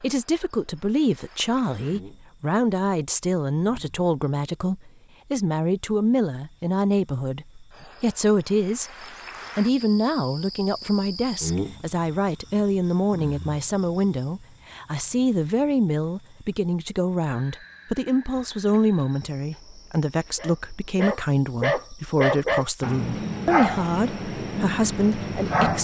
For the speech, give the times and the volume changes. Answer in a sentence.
You can hear the speech from 0.0 to 8.9 s, at a steady volume; and from 9.6 to 25.7 s, at a steady volume.